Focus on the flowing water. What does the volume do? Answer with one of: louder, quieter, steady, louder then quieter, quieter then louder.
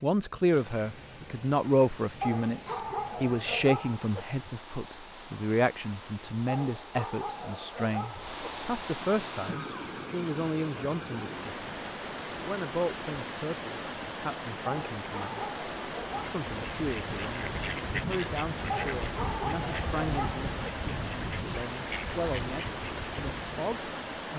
louder.